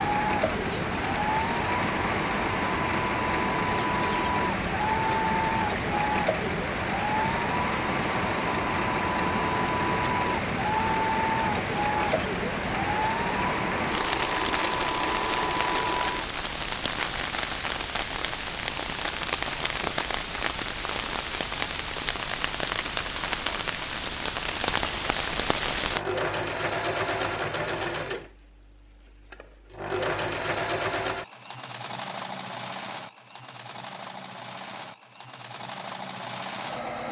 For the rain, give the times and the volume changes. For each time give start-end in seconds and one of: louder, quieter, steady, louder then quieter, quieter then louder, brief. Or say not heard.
0.0-26.1 steady.